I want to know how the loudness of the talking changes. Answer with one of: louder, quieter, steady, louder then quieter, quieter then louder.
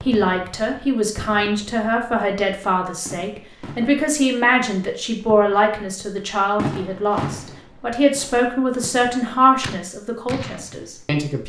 steady.